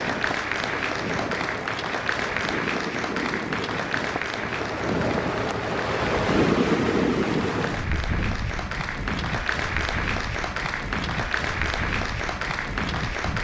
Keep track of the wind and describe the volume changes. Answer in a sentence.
The loudness of the wind goes up, then down.